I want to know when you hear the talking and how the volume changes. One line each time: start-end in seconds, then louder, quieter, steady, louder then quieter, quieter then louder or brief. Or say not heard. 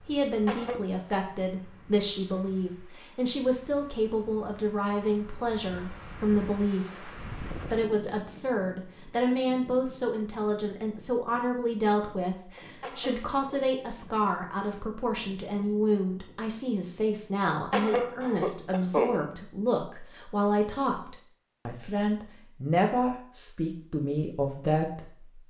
0.1-25.4 steady.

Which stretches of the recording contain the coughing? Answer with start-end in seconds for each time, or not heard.
0.2-0.8, 12.6-13.6, 17.7-19.2.